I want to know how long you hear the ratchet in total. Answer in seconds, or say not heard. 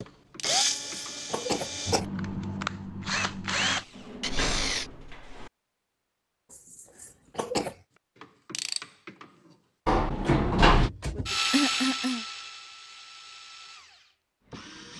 3 s.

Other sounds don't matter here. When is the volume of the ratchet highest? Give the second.
9 s.